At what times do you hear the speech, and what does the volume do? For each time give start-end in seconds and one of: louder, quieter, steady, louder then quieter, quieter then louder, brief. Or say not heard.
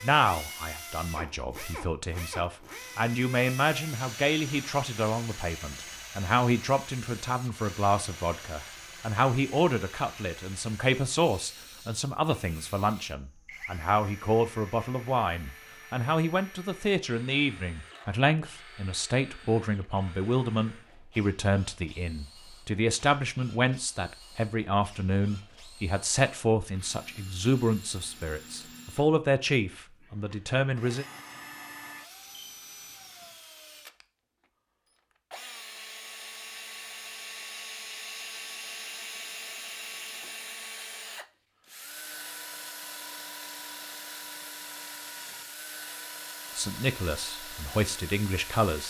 0.0-31.1 steady
46.5-48.8 brief.